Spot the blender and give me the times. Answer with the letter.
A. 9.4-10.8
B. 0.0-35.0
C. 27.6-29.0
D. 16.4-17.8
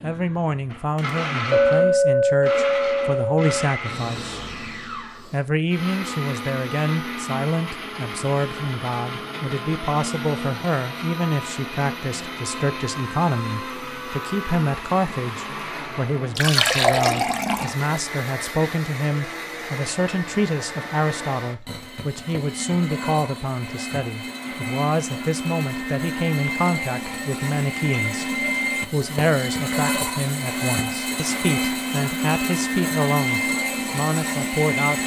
B.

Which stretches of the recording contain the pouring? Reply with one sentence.
You can hear the pouring from 16.4 to 17.8 s.